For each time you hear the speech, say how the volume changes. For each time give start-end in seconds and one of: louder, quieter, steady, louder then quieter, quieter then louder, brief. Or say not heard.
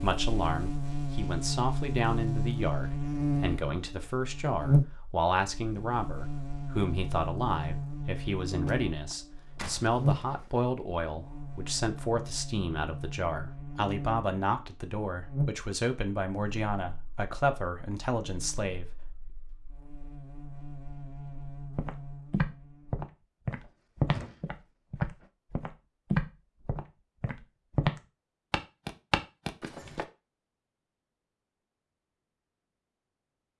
0.0-18.9 steady.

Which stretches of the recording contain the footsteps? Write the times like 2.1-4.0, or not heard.
21.8-30.1.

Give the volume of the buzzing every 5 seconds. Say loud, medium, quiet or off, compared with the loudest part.
loud, medium, medium, medium, quiet, off, off.